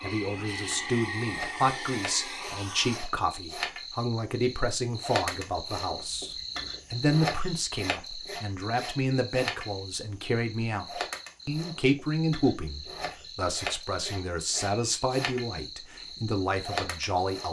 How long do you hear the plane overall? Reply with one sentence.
You can hear the plane for 3 seconds altogether.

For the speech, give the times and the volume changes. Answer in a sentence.
You can hear the speech from 0.0 to 17.4 s, at a steady volume.